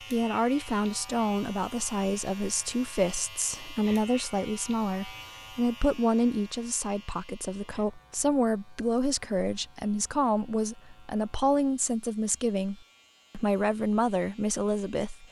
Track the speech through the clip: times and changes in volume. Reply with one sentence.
You can hear the speech from 0.1 to 15.2 s, at a steady volume.